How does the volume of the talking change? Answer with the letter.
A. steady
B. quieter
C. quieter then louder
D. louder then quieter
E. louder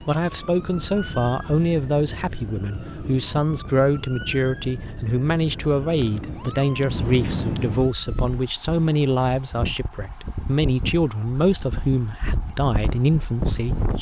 A.